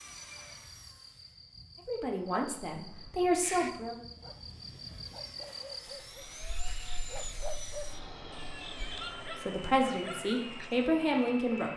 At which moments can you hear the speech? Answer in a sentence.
You can hear the speech from 1.9 to 4.0 s and from 9.3 to 11.7 s.